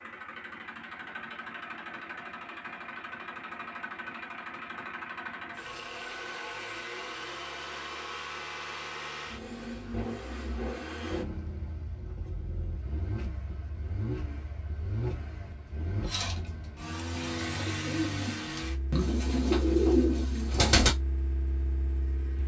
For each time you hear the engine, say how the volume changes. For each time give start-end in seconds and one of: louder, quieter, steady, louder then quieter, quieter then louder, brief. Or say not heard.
0.0-22.4 steady.